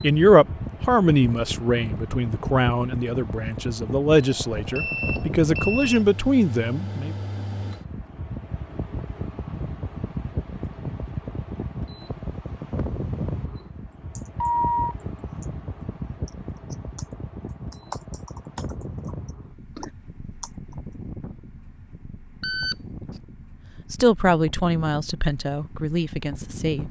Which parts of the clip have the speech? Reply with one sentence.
You can hear the speech from 0.0 to 7.2 s and from 23.9 to 26.8 s.